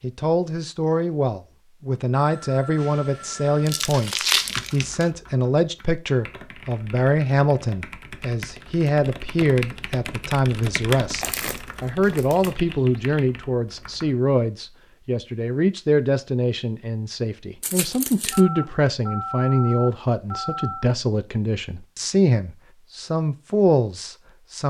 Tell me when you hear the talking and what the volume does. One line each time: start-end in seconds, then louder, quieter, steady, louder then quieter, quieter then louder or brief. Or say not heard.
0.0-24.6 steady.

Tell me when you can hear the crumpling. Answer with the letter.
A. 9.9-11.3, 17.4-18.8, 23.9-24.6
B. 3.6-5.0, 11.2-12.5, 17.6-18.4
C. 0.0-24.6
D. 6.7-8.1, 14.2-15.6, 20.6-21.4
B.